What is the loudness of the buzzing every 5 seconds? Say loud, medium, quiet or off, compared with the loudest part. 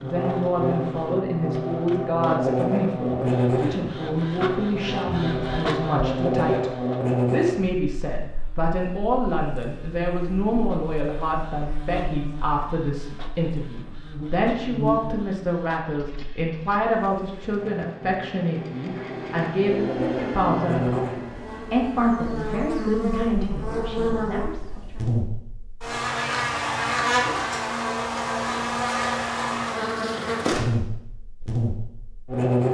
loud, loud, medium, medium, loud, loud, loud.